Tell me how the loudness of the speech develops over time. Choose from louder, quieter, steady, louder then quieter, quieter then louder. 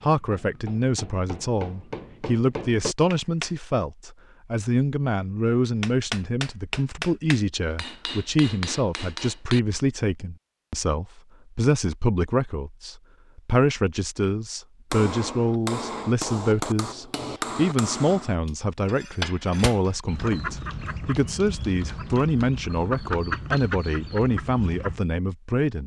steady.